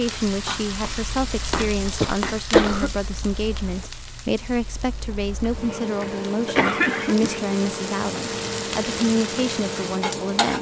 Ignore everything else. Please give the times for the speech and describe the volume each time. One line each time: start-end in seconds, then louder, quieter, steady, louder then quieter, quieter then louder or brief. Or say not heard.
0.0-10.5 steady.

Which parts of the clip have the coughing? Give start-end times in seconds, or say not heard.
1.9-3.0, 5.6-7.4.